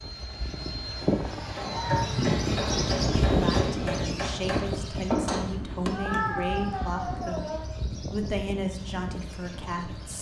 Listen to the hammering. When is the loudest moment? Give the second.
5 s.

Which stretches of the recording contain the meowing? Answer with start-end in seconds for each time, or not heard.
1.6-2.1, 5.9-7.7.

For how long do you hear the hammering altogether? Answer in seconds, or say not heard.
5 s.